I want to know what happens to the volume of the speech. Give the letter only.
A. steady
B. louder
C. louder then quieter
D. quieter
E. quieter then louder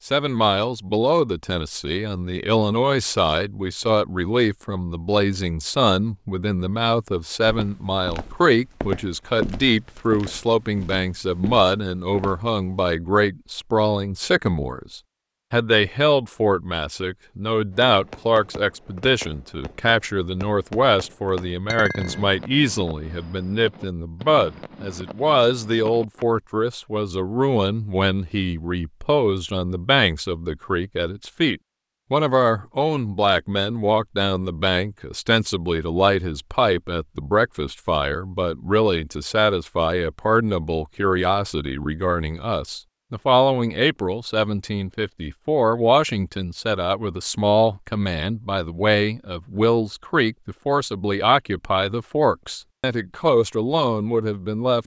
A.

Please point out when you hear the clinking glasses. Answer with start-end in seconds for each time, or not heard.
21.7-22.3.